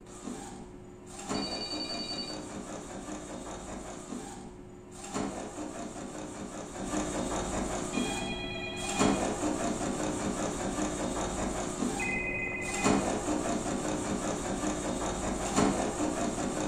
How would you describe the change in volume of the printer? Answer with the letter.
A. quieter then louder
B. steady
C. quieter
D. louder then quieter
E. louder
E.